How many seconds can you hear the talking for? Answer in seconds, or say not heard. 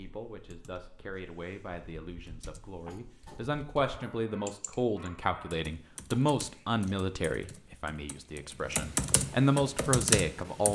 11 s.